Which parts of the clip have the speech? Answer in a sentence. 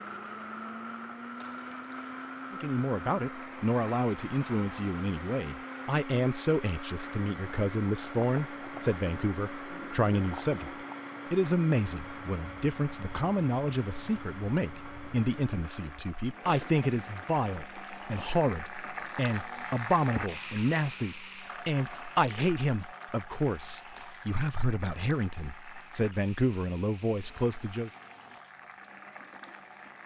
The speech can be heard from 2.5 to 10.7 s and from 11.3 to 27.9 s.